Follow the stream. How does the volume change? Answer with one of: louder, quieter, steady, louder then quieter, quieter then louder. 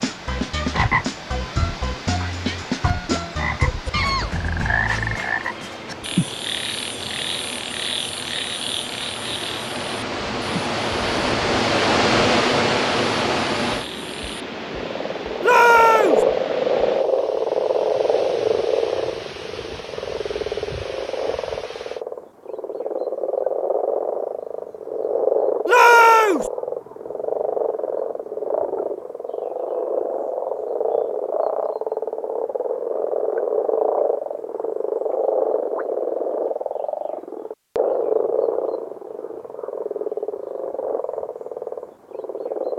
louder then quieter.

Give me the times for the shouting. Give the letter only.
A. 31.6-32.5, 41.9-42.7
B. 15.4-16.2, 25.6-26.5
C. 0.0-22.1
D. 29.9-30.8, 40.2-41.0
B.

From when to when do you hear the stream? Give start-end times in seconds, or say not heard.
0.0-22.1.